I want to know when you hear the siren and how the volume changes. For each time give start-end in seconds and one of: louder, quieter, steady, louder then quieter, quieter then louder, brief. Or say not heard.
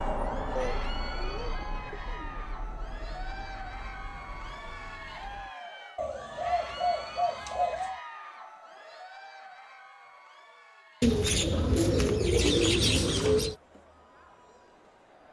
0.0-5.5 quieter.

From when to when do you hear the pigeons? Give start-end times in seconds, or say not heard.
0.6-2.5, 6.0-8.0, 11.0-13.6.